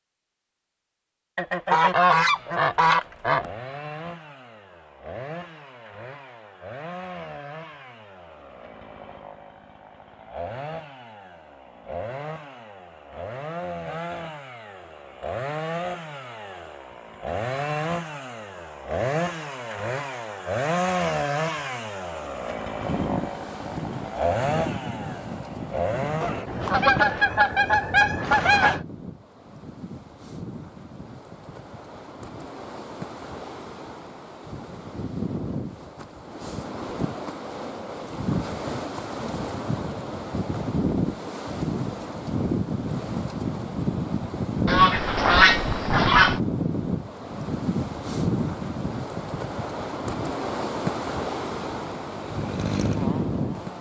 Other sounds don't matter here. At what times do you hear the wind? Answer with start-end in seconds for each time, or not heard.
22.8-53.7.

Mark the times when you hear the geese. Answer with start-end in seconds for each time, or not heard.
1.4-3.5, 26.2-28.8, 44.6-46.4.